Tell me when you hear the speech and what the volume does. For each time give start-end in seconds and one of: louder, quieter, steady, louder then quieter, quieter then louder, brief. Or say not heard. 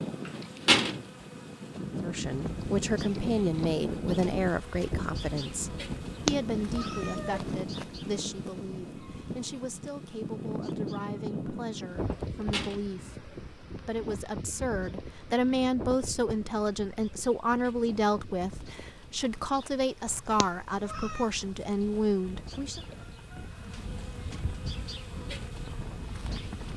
2.0-22.8 quieter then louder.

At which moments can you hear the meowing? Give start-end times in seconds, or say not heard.
6.2-7.5, 20.4-21.3.